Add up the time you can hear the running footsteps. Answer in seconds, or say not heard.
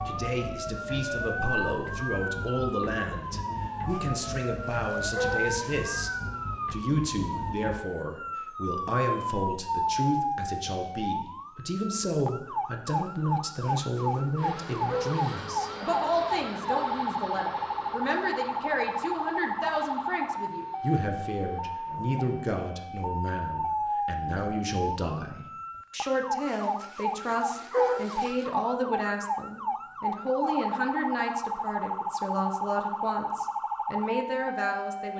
not heard.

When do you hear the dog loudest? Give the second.
28 s.